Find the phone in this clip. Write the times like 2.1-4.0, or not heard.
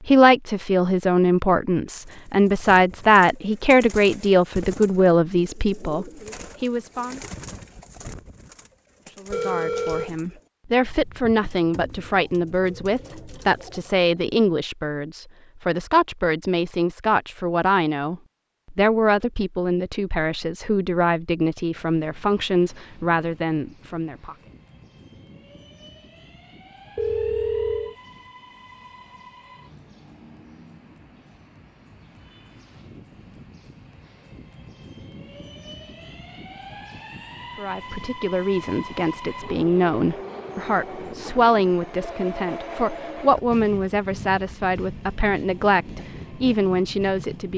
9.3-10.2, 26.9-27.9, 42.0-43.2.